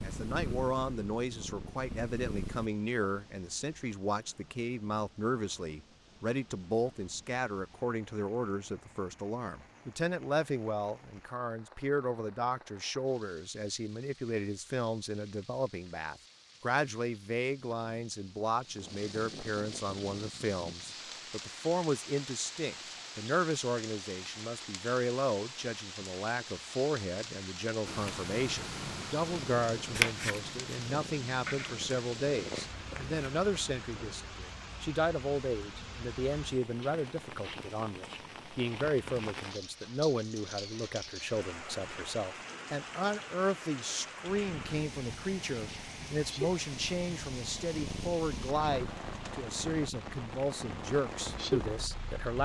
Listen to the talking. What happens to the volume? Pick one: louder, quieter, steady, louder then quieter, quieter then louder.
steady.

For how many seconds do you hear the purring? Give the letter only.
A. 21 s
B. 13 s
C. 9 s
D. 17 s
D.